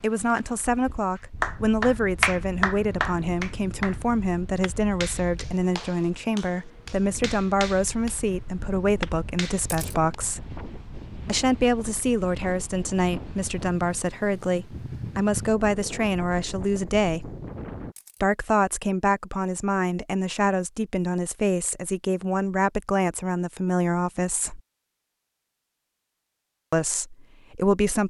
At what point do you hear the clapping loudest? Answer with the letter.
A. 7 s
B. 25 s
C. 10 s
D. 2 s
D.